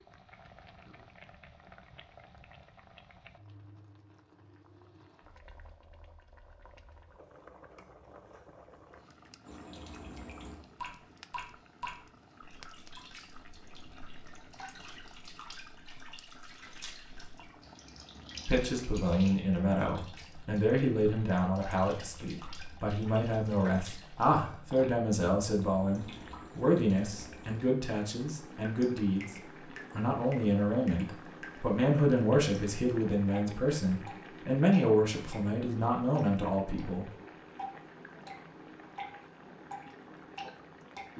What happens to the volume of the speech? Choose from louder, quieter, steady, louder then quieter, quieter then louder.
steady.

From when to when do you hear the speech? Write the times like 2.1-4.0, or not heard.
18.4-37.1.